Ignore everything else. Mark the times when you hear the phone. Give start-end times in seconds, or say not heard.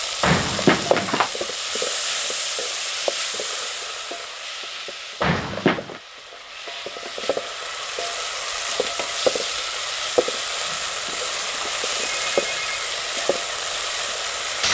0.2-1.3, 5.2-6.0, 10.6-12.9.